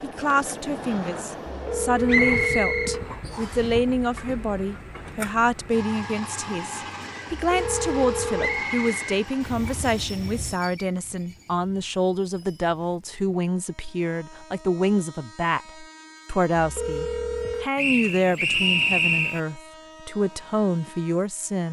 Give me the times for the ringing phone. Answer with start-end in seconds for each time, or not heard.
1.4-3.0, 7.3-8.7, 16.6-17.7.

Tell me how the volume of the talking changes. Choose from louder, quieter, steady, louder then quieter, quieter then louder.
steady.